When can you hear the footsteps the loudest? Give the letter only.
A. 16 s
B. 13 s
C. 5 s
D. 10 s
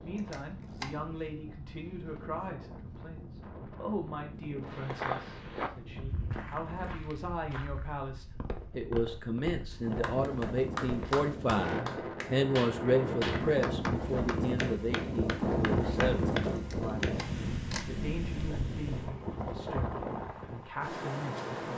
C.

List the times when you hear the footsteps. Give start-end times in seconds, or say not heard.
4.7-11.3.